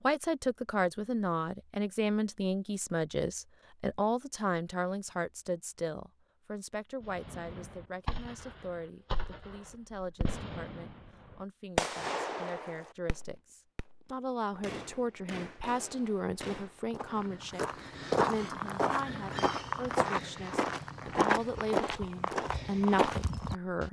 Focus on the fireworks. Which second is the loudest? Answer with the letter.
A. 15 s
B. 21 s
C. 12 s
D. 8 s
C.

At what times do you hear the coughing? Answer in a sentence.
The coughing can't be heard in this clip.